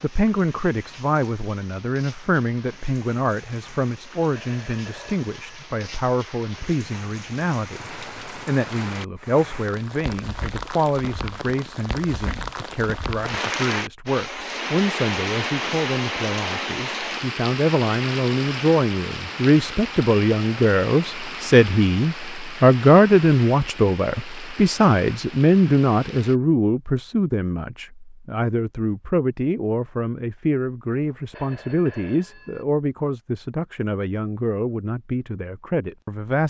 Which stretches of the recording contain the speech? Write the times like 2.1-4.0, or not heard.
0.0-36.4.